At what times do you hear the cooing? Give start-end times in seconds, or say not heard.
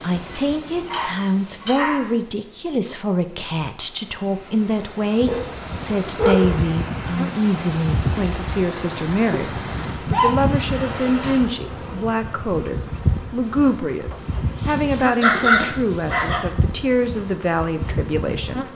not heard.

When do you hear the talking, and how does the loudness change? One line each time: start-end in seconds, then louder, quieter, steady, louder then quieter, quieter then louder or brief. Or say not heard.
0.0-18.7 steady.